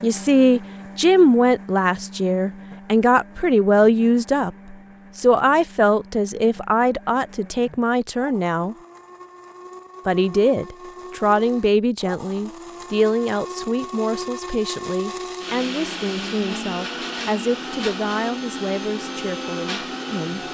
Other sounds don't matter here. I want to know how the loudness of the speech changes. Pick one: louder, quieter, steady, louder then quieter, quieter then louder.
quieter.